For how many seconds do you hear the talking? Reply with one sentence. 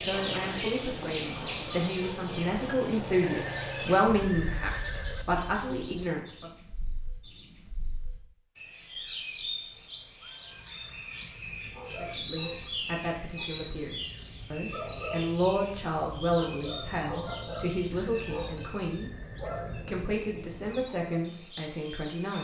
The talking can be heard for 16 seconds in total.